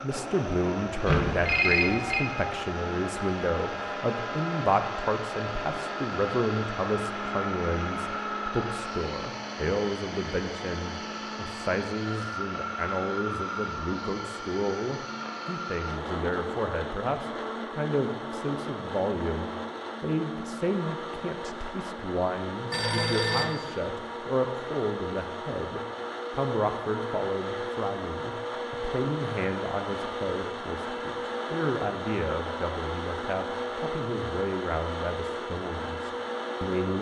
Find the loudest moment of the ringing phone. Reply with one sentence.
The volume of the ringing phone peaks at 2 seconds.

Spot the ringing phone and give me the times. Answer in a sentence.
You can hear the ringing phone from 1.1 to 2.2 s and from 22.7 to 23.5 s.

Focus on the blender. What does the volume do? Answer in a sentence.
The loudness of the blender stays about the same.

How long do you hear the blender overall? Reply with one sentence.
You can hear the blender for 37 seconds altogether.